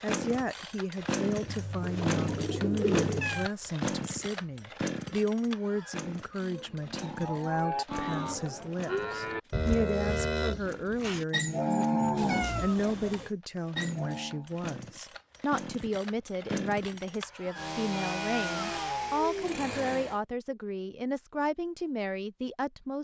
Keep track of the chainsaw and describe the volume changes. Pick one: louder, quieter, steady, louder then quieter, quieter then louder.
quieter then louder.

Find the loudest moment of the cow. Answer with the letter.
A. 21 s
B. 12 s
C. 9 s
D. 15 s
B.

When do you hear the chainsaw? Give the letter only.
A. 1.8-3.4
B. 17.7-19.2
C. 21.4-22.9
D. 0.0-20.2
D.